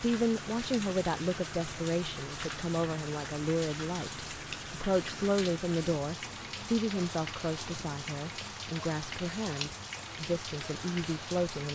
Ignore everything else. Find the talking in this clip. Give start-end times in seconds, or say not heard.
0.0-11.6.